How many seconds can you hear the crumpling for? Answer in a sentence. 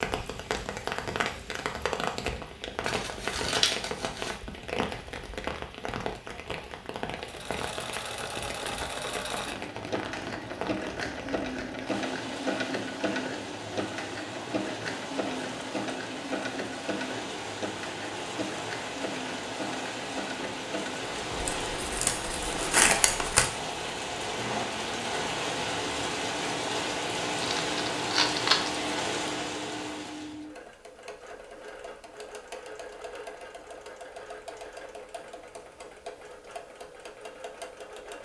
The crumpling can be heard for 5 seconds in total.